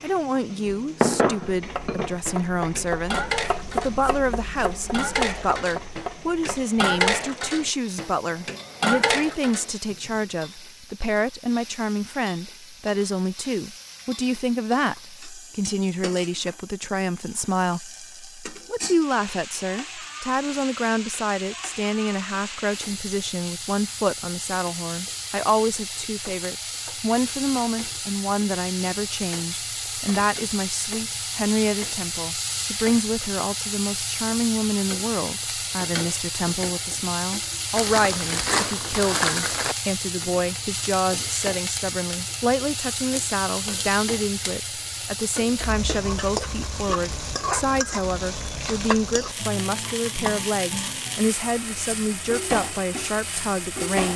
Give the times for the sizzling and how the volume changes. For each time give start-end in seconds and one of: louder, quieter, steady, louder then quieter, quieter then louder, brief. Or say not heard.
0.0-54.1 louder.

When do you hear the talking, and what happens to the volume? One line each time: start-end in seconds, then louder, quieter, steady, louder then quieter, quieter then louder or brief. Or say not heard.
0.0-54.1 steady.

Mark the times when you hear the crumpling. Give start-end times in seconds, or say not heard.
37.8-39.8.